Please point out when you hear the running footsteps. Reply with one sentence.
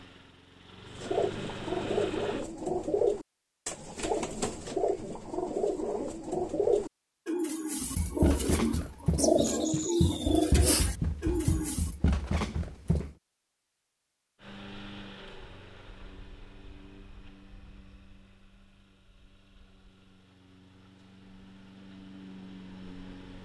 The running footsteps can be heard from 7.8 to 13.2 s.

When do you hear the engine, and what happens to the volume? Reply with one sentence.
You can hear the engine briefly from 0.0 to 2.5 s; and from 14.4 to 23.4 s, getting quieter then louder.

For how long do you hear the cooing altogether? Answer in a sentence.
You can hear the cooing for 11 seconds altogether.